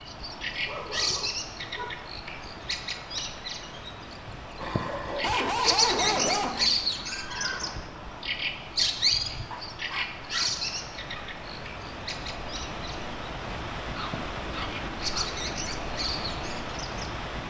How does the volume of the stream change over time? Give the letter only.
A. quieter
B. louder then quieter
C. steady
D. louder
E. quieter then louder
D.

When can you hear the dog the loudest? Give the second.
6 s.